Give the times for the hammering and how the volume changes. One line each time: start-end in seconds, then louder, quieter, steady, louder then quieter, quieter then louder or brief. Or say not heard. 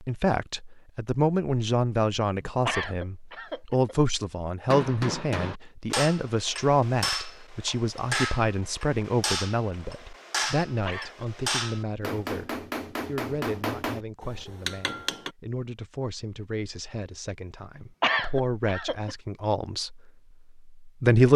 4.7-15.3 steady.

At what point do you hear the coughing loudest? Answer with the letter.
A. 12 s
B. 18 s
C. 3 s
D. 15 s
B.